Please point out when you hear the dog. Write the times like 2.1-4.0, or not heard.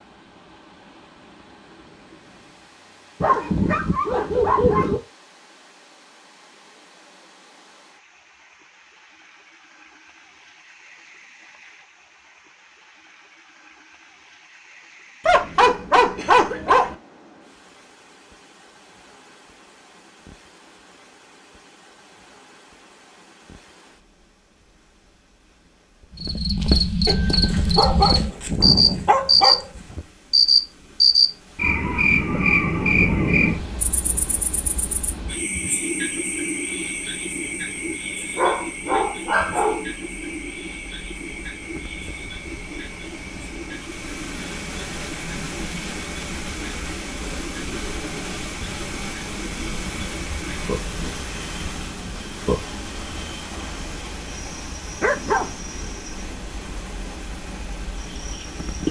3.2-5.0, 15.2-16.9, 27.1-29.8, 38.4-39.9, 55.0-55.5.